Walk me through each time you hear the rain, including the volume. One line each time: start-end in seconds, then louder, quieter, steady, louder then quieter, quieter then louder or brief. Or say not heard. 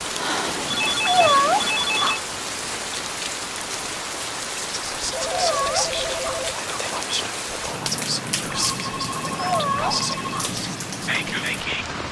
0.0-12.0 steady.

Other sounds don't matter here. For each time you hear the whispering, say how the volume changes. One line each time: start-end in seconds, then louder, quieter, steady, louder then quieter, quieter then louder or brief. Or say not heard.
4.7-11.8 steady.